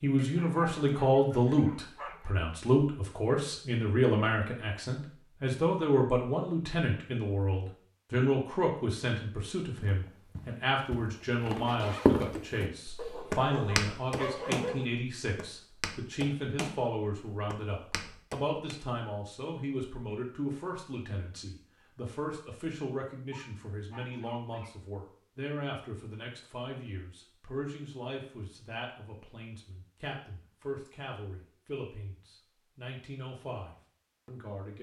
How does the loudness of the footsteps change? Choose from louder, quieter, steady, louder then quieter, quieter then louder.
louder then quieter.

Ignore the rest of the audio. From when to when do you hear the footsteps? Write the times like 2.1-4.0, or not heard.
9.8-18.8.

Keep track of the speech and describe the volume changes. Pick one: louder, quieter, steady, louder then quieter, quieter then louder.
quieter.